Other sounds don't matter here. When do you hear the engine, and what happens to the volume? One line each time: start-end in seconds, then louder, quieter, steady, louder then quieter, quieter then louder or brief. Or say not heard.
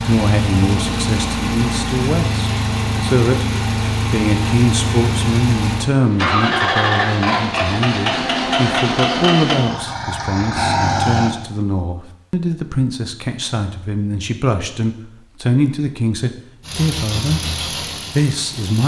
0.0-11.3 steady
16.6-18.8 brief.